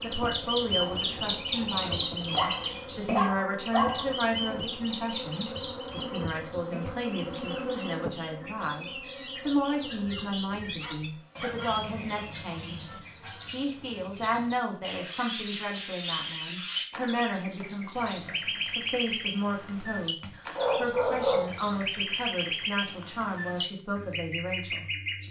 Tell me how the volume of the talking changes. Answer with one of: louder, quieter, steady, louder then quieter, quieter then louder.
steady.